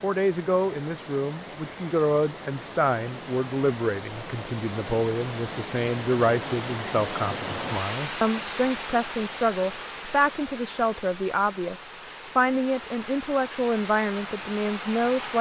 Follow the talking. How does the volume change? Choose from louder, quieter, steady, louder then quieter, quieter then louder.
steady.